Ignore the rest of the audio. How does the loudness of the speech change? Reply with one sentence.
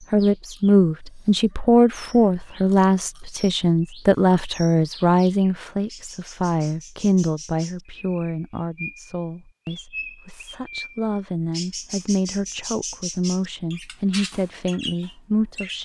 The loudness of the speech goes down.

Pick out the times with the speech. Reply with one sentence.
The speech can be heard from 0.1 to 15.8 s.